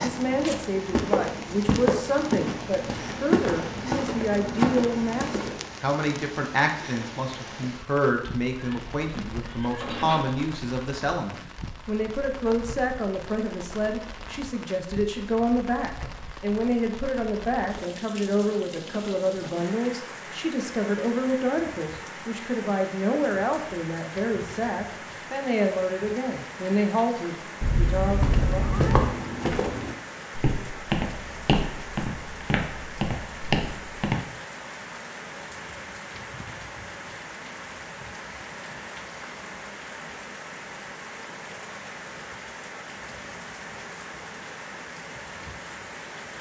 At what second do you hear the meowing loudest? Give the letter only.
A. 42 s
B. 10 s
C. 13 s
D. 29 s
D.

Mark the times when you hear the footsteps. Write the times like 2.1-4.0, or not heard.
0.0-5.7, 28.1-34.2.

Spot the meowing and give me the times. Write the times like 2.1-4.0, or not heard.
8.6-10.4, 27.6-29.1.